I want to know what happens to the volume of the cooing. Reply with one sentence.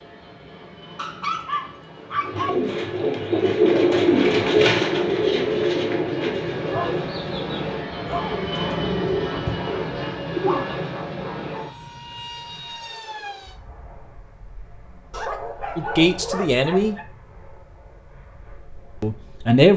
The loudness of the cooing goes down, then up.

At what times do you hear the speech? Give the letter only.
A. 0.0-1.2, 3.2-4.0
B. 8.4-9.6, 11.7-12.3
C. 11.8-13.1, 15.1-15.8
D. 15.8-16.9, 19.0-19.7
D.